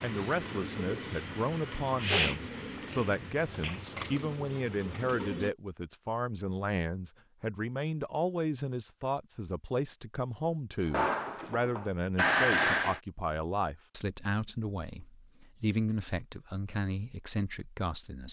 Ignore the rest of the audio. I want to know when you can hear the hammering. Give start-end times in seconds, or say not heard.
10.9-13.0.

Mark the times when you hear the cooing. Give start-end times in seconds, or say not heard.
0.0-5.5.